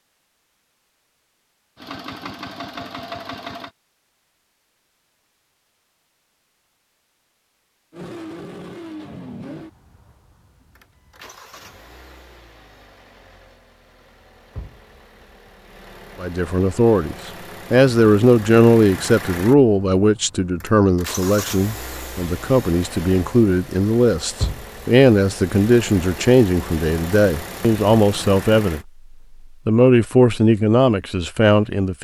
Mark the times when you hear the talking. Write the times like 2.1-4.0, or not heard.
16.2-28.8, 29.6-31.9.